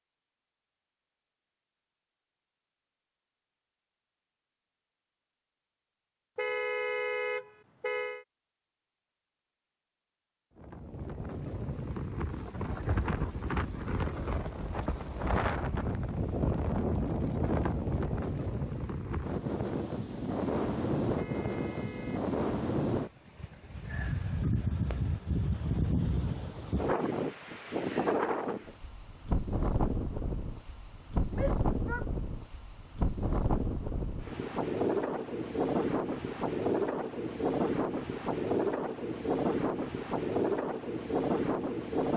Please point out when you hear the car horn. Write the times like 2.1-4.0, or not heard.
6.3-8.2, 21.1-22.2.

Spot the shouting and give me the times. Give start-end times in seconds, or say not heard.
31.3-32.0.